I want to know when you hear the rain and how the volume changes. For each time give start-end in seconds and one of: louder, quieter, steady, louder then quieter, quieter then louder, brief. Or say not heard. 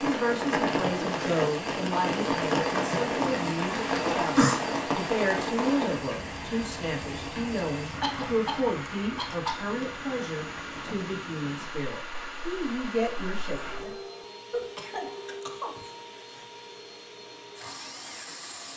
0.0-14.0 quieter.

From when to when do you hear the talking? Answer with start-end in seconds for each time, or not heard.
0.0-13.9.